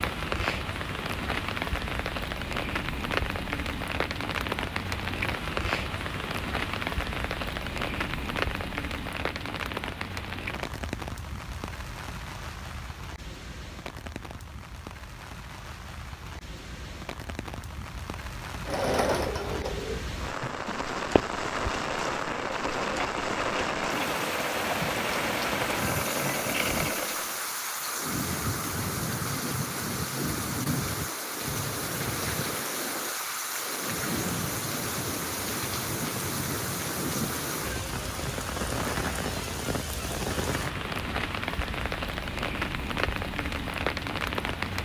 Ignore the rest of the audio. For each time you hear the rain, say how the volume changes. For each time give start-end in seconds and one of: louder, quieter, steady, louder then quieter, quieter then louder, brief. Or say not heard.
0.0-44.8 quieter then louder.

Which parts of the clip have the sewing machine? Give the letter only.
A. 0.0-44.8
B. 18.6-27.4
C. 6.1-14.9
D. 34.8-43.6
B.